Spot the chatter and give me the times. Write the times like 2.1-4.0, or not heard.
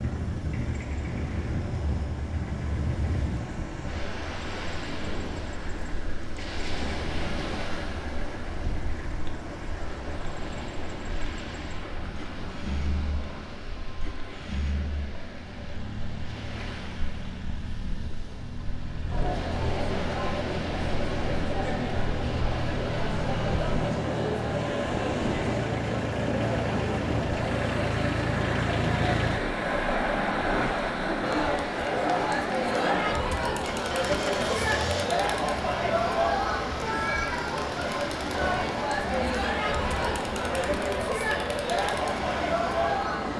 19.1-43.3.